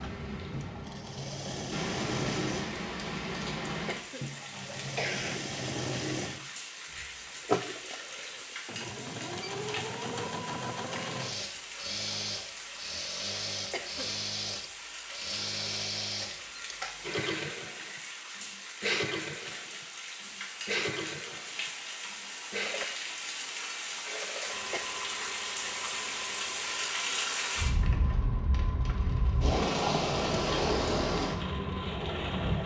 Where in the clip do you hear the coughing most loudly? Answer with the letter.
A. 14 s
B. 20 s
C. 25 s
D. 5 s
D.